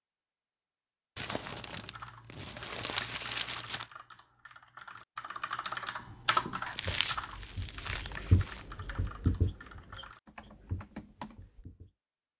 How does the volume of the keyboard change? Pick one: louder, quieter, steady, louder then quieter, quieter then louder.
louder then quieter.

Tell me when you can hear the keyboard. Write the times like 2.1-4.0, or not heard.
1.8-11.7.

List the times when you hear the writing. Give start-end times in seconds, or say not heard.
5.9-11.9.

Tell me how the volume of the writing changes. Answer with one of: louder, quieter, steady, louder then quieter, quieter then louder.
louder then quieter.